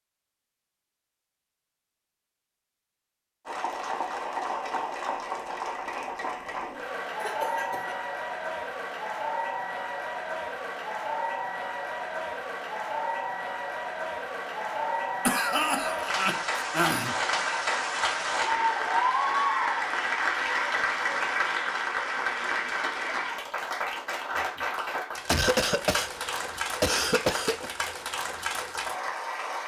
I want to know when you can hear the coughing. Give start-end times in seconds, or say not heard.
7.2-8.0, 15.2-17.1, 25.3-27.7.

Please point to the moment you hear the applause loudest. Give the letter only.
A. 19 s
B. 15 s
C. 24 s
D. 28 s
A.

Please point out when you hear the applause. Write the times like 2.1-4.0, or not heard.
3.5-29.6.